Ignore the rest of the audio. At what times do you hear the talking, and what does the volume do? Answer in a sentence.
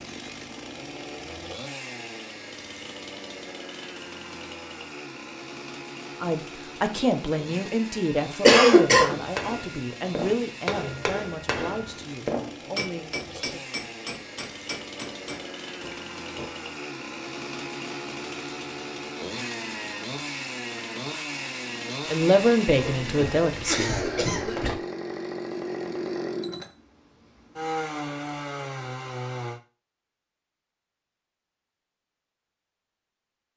You can hear the talking from 6.2 to 13.6 s, getting quieter; and briefly from 22.1 to 24.1 s.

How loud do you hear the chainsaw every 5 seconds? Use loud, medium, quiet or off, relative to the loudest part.
medium, medium, medium, loud, loud, loud, off.